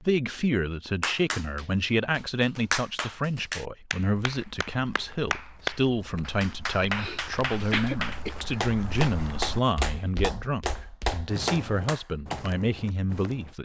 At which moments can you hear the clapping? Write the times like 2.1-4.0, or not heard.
1.0-12.4.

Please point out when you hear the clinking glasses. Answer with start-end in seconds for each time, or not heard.
not heard.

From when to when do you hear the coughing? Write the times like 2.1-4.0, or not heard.
6.8-8.3.